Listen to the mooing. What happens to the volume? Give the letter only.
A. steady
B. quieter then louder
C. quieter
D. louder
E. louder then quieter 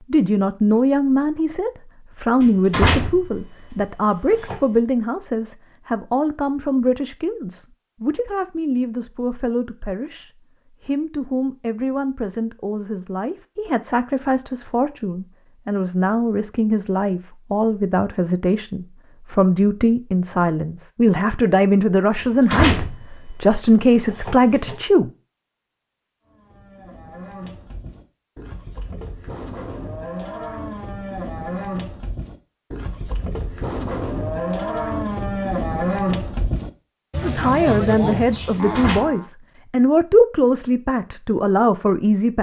D.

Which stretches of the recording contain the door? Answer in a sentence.
You can hear the door from 2.4 to 4.6 s, from 22.1 to 24.8 s and from 38.6 to 39.1 s.